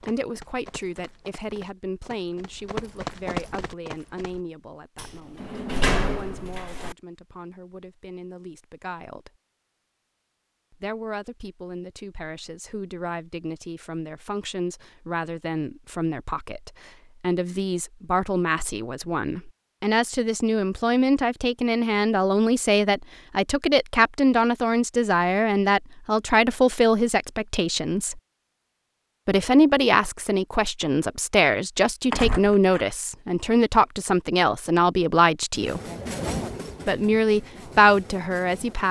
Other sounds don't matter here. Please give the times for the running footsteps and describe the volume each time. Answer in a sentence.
You can hear the running footsteps from 0.0 to 4.4 s, getting louder.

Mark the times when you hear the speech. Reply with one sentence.
You can hear the speech from 0.0 to 9.3 s, from 10.7 to 28.2 s, from 29.2 to 35.8 s and from 36.9 to 38.8 s.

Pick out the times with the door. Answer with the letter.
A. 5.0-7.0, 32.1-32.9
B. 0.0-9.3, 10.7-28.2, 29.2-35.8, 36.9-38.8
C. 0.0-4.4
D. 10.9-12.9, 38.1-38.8
A.